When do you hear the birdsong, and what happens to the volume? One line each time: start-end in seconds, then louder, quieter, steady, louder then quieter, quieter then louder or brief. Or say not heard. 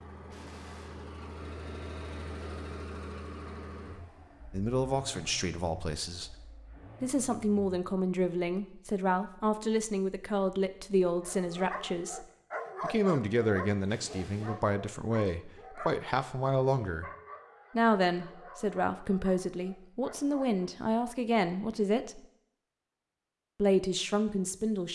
not heard.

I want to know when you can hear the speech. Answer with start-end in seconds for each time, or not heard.
4.5-6.3, 7.0-17.1, 17.8-22.2, 23.6-24.8.